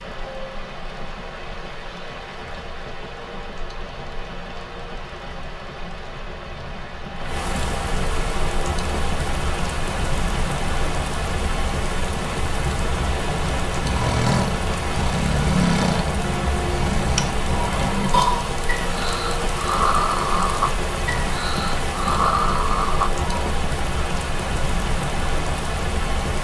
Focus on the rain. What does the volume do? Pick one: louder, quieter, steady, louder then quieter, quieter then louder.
louder.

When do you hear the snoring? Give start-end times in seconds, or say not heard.
13.8-23.5.